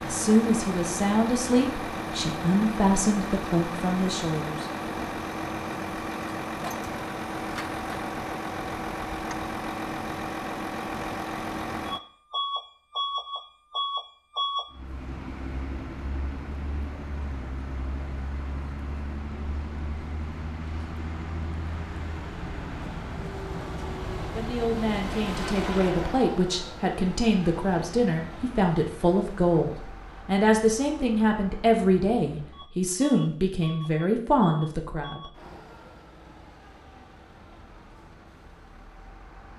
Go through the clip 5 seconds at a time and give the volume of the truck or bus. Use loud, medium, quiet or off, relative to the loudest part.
loud, loud, loud, medium, medium, medium, quiet, quiet.